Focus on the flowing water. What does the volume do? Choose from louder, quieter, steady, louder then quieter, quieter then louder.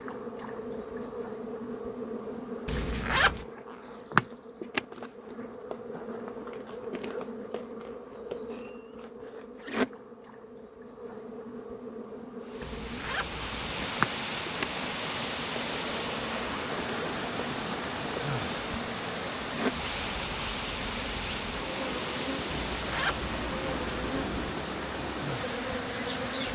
steady.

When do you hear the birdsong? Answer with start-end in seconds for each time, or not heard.
not heard.